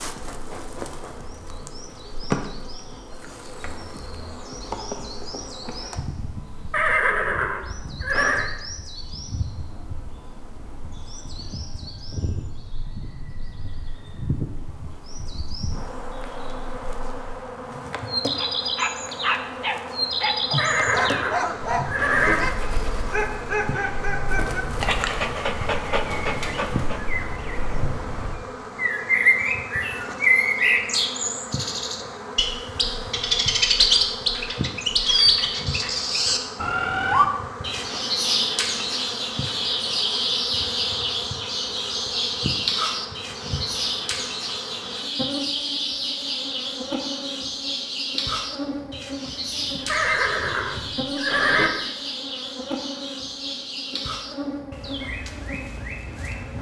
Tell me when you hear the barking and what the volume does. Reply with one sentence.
The barking can be heard from 18.4 to 27.1 s, at a steady volume.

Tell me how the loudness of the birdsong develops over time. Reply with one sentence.
The volume of the birdsong goes up, then down.